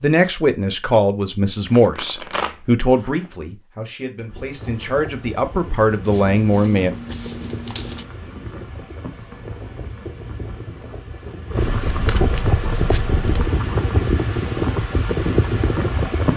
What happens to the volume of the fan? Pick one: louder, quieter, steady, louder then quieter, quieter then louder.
louder.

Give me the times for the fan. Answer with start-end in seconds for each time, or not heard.
4.2-16.3.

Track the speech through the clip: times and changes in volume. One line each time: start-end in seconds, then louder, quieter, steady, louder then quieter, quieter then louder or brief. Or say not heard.
0.0-6.9 quieter then louder.